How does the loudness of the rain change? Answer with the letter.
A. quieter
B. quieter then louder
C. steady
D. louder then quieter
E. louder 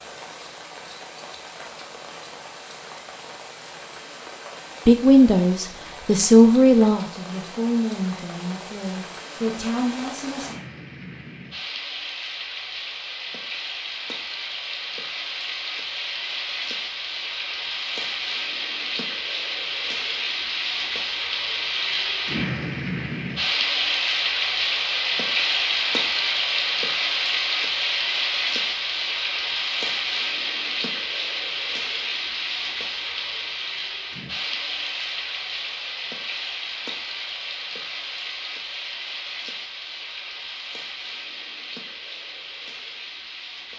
D.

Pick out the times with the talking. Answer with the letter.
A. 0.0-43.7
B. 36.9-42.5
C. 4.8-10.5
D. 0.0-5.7
C.